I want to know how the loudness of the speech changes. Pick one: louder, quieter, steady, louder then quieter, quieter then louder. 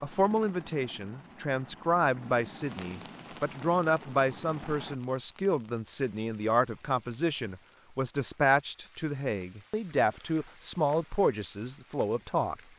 steady.